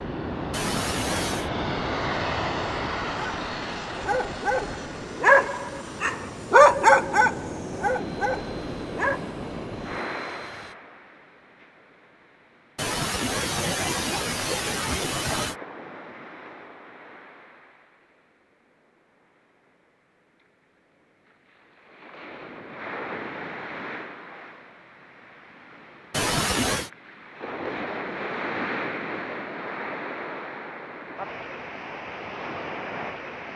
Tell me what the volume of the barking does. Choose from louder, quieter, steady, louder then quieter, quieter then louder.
louder then quieter.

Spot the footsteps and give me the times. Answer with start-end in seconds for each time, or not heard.
not heard.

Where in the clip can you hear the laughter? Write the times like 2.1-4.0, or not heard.
0.5-1.5, 12.8-15.6, 26.1-26.9.